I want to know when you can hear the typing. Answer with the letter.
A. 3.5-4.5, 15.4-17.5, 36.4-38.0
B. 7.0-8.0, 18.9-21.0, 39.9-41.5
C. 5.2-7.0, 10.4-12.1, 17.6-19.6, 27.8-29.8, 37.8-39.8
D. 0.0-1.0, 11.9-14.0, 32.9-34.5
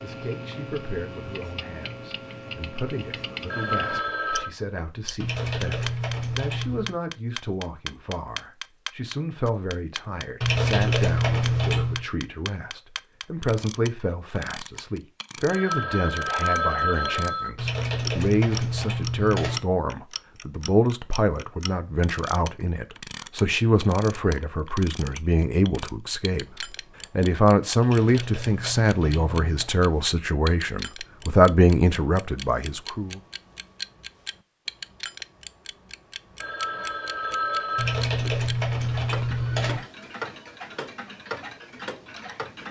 C.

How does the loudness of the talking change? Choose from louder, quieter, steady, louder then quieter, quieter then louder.
louder.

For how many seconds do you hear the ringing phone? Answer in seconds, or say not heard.
5 s.